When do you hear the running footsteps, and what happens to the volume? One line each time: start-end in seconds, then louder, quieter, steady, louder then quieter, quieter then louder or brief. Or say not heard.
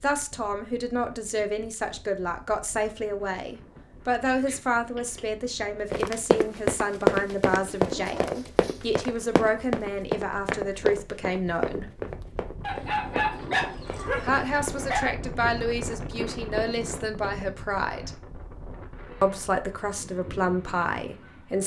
5.9-17.4 quieter.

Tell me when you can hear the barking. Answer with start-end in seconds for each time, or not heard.
7.8-9.0, 12.6-15.2.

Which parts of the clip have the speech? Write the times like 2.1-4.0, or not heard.
0.0-11.8, 14.2-18.1, 19.2-21.6.